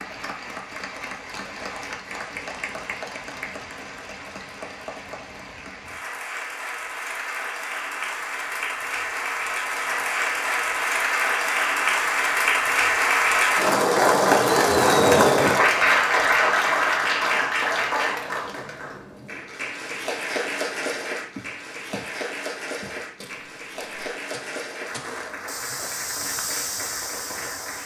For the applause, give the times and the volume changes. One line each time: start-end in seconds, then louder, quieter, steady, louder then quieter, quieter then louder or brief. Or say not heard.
0.0-27.8 louder then quieter.